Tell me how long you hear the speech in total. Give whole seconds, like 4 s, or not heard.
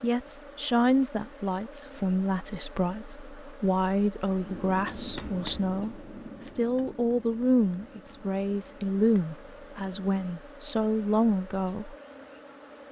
12 s.